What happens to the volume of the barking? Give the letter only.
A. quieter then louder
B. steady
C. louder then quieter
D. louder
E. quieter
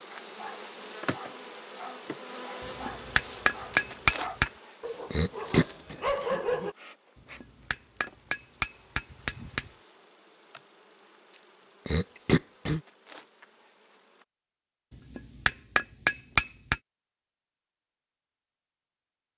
D.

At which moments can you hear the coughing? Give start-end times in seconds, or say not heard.
5.1-6.0, 11.8-12.8.